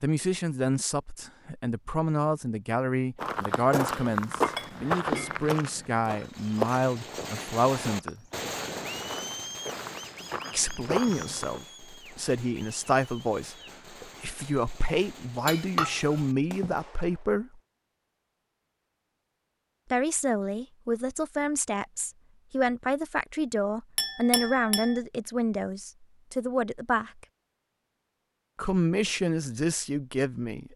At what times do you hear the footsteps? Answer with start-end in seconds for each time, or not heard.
3.1-11.6.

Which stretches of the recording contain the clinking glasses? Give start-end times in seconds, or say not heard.
4.4-5.5, 15.4-16.8, 23.9-25.0.